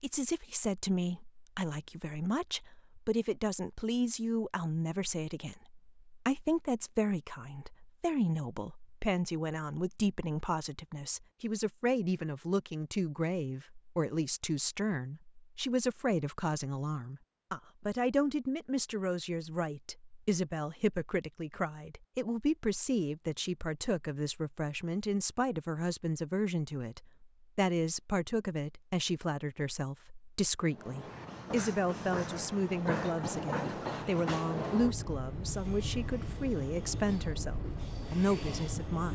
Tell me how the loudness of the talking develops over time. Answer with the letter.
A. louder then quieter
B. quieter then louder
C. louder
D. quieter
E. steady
E.